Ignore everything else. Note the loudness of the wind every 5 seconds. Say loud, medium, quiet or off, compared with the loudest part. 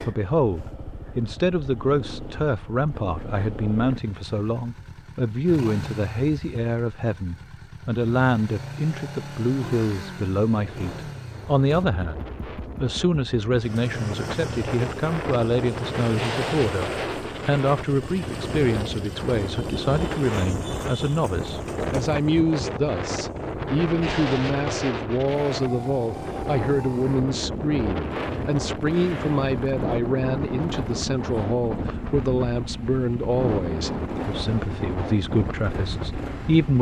off, off, medium, loud, loud, loud, loud, loud.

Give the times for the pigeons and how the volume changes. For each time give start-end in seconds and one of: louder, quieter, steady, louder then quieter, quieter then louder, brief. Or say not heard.
not heard.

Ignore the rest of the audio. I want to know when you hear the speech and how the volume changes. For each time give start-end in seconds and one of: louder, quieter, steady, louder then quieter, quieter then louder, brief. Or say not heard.
0.0-36.7 steady.